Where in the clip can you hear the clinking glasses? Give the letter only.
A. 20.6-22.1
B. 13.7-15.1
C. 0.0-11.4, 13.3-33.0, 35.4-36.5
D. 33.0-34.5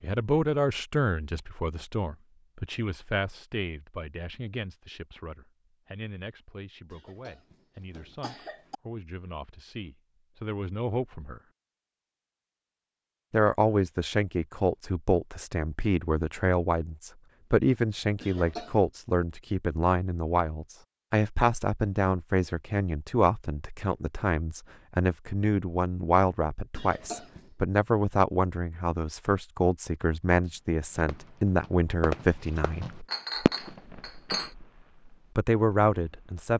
D.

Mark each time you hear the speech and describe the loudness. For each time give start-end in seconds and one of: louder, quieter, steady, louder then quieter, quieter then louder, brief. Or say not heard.
0.0-11.4 quieter then louder
13.3-33.0 steady
35.4-36.5 brief.